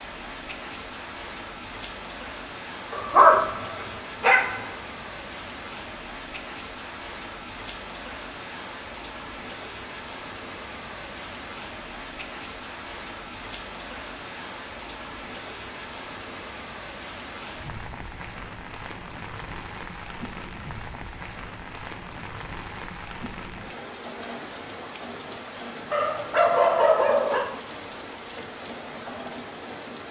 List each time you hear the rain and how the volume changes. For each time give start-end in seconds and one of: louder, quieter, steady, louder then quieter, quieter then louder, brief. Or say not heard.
0.0-30.0 steady.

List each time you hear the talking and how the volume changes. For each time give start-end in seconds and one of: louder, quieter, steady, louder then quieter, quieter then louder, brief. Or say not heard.
not heard.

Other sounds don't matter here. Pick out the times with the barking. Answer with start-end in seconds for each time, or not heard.
2.9-4.6, 25.9-27.4.